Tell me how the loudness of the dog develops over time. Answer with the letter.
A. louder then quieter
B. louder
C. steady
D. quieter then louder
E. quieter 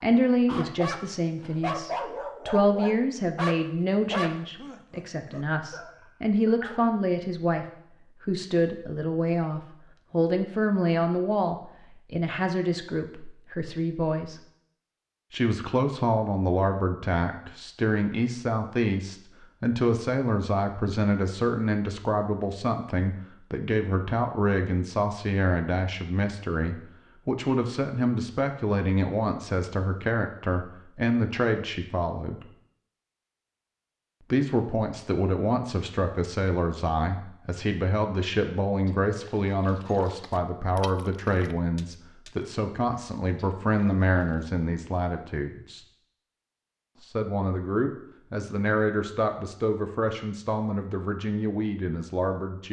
E.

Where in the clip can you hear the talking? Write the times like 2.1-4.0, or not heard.
0.0-14.4, 15.3-32.5, 34.3-45.9, 47.0-52.6.